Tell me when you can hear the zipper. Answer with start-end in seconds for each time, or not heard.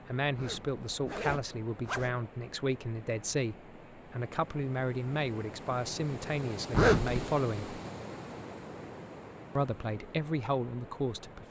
0.3-2.1, 6.7-7.2.